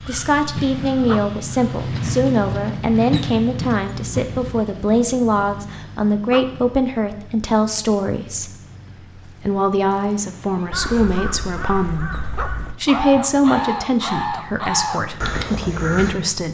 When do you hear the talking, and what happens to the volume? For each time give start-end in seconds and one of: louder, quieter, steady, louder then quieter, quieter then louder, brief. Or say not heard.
0.1-16.4 steady.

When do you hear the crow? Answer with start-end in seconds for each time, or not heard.
0.0-1.9, 10.7-16.1.